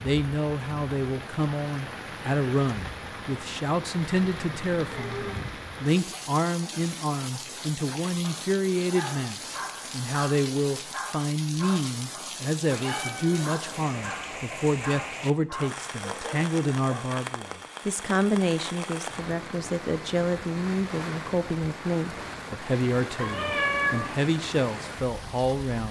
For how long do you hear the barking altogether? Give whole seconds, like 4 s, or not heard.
9 s.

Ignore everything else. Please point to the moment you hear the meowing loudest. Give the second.
24 s.